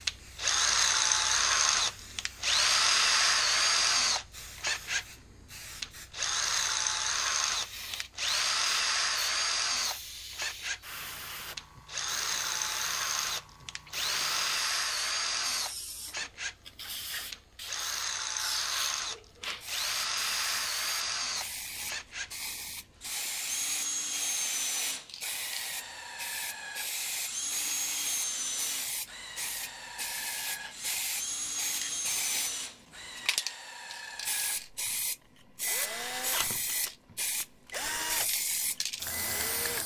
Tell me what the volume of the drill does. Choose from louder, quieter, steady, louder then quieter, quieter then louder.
quieter.